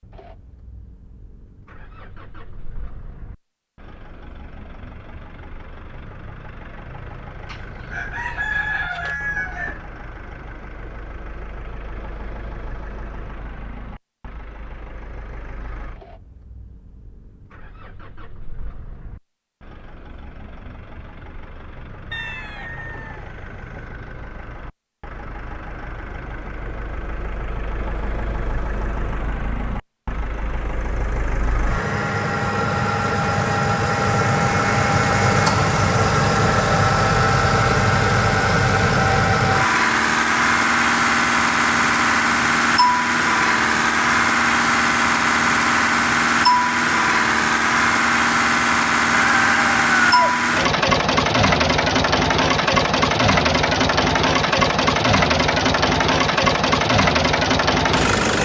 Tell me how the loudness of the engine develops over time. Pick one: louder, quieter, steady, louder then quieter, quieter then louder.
louder.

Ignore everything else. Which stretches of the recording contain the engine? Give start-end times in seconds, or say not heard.
0.0-58.4.